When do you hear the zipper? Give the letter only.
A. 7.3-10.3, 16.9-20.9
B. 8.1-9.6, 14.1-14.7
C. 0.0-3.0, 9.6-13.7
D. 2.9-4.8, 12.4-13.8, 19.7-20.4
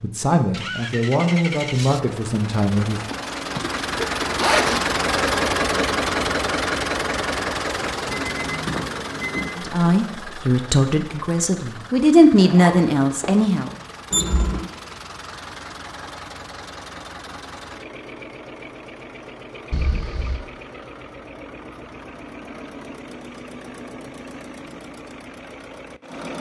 D.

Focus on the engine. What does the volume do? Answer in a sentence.
The volume of the engine goes down.